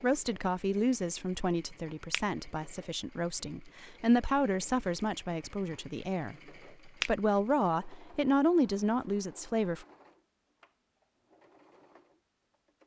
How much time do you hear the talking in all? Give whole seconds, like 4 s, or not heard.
10 s.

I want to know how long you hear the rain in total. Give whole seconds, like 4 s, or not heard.
not heard.